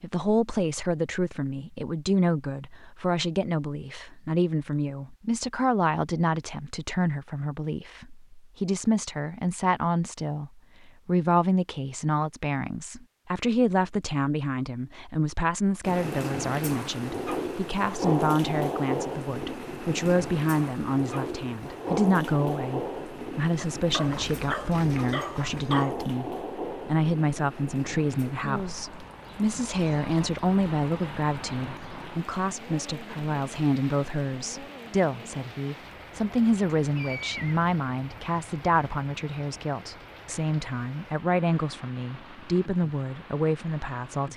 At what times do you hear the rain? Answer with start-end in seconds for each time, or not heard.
15.8-44.3.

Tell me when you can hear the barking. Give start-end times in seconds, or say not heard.
23.9-25.9.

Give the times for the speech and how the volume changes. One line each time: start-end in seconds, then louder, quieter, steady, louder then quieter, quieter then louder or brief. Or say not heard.
0.0-44.3 steady.